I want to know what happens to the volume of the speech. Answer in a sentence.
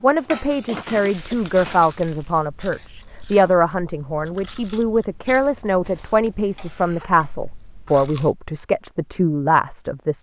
The volume of the speech stays about the same.